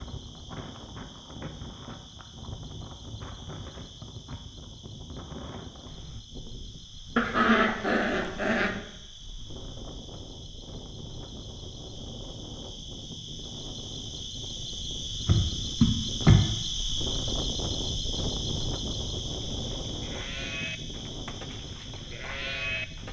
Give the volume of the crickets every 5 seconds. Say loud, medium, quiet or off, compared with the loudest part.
quiet, quiet, medium, loud, medium.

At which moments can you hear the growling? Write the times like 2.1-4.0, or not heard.
7.2-8.8.